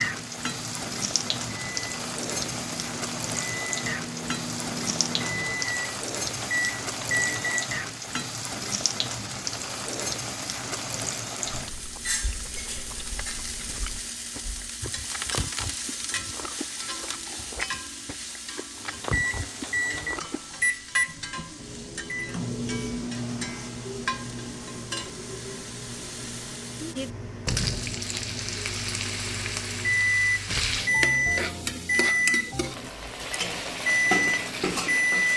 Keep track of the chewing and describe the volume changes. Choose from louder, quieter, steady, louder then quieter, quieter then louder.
louder.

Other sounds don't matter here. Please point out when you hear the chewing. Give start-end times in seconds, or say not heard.
11.4-20.6.